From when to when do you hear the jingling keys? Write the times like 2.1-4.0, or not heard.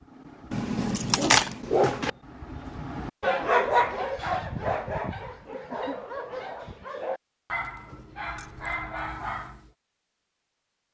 0.5-2.1, 8.3-9.0.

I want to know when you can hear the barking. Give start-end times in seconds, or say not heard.
0.0-9.7.